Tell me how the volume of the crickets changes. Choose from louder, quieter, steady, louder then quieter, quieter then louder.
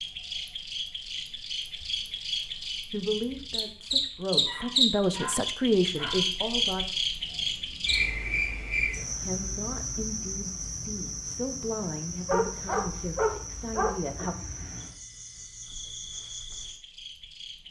louder then quieter.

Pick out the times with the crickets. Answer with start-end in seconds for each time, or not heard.
0.0-17.6.